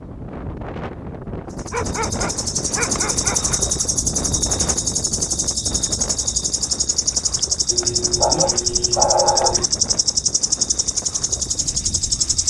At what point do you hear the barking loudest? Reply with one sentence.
The volume of the barking peaks at 9 seconds.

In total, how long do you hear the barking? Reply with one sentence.
The barking can be heard for 4 seconds in total.